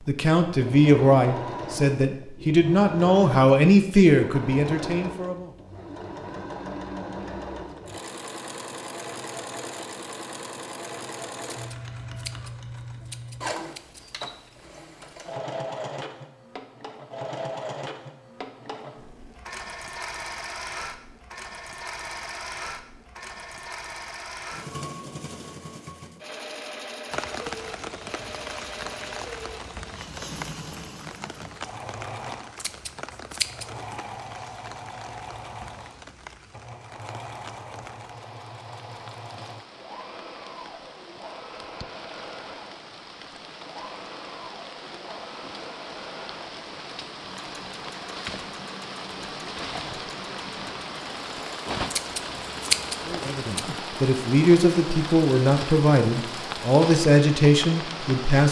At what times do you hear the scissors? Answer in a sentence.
The scissors can be heard from 11.5 to 14.1 s, from 32.5 to 33.8 s and from 51.9 to 53.6 s.